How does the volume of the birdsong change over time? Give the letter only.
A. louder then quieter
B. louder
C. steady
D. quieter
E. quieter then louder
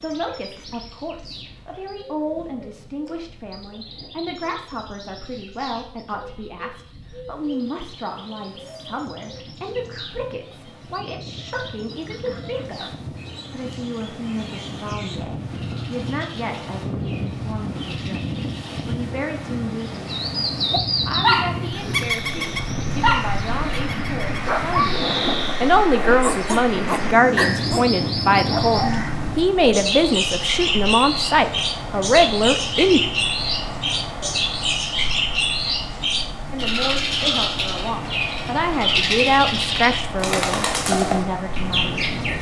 B.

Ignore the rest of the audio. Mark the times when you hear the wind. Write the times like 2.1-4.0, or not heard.
0.0-42.3.